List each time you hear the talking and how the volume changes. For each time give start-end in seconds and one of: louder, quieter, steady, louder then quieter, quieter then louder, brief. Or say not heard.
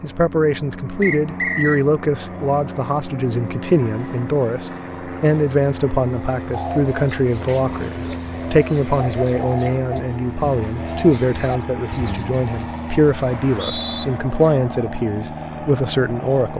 0.0-16.5 steady.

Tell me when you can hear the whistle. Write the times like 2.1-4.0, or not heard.
1.0-1.9, 13.3-14.1.